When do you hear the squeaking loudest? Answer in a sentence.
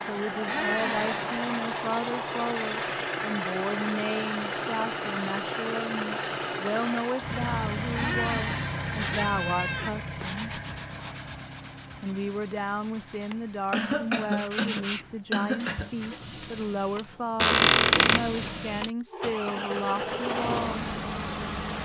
The loudest moment of the squeaking is at 18 seconds.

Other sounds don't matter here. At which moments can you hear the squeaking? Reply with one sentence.
You can hear the squeaking from 0.5 to 1.2 s, from 7.9 to 9.9 s and from 17.4 to 18.2 s.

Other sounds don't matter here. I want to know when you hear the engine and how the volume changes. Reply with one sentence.
You can hear the engine from 0.0 to 21.8 s, getting quieter then louder.